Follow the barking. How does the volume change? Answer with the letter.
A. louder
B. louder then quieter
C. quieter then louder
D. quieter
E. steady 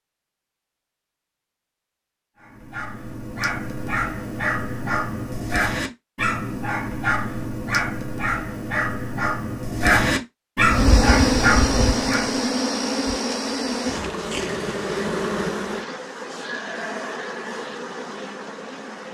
A.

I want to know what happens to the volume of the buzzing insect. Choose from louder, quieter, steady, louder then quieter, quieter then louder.
quieter.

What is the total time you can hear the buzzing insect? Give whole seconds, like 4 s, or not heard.
8 s.